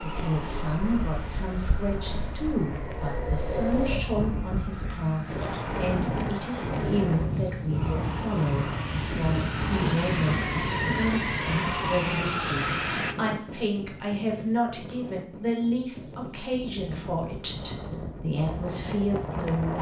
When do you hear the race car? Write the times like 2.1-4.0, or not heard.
0.0-13.2.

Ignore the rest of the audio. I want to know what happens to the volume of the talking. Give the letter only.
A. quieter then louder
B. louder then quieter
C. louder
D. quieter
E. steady
E.